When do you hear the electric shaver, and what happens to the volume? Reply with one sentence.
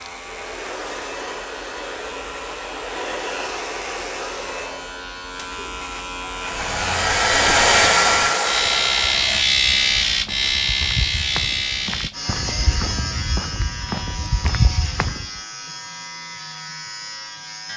You can hear the electric shaver from 0.0 to 17.7 s, getting louder then quieter.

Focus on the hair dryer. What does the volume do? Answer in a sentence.
The volume of the hair dryer goes up.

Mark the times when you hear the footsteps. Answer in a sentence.
The footsteps can be heard from 6.5 to 15.2 s.